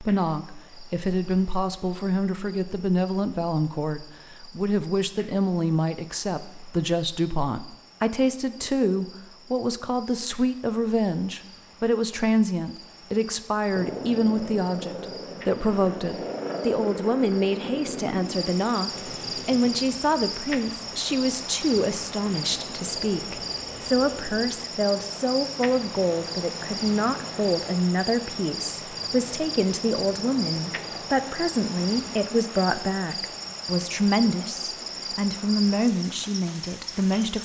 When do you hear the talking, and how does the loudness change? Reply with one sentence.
The talking can be heard from 0.0 to 37.3 s, at a steady volume.